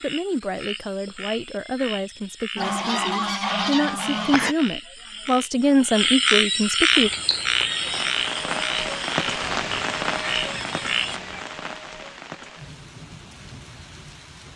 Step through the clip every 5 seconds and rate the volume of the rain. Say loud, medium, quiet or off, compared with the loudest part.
off, loud, medium.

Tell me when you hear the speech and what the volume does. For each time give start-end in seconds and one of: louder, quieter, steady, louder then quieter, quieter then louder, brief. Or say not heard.
0.0-7.1 louder.